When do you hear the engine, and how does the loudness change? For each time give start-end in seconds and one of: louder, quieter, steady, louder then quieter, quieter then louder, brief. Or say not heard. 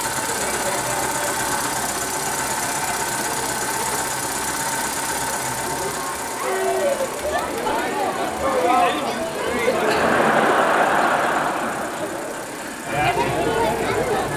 0.0-14.3 quieter.